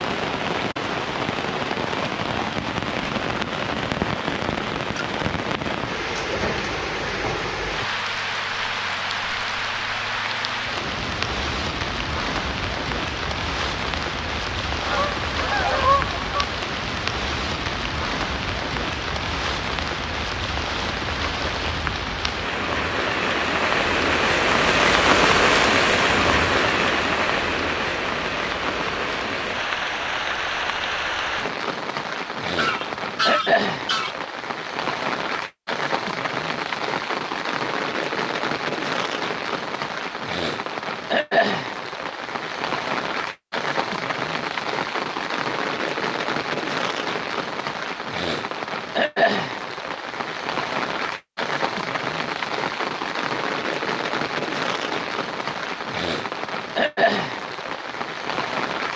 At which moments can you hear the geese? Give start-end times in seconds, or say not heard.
14.8-16.4, 32.5-34.1.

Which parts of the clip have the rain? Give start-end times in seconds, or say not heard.
0.0-58.9.